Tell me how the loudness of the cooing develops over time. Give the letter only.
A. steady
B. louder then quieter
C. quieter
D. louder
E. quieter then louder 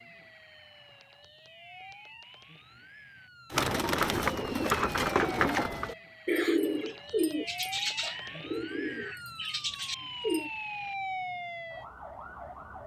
C.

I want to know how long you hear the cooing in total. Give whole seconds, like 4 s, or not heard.
7 s.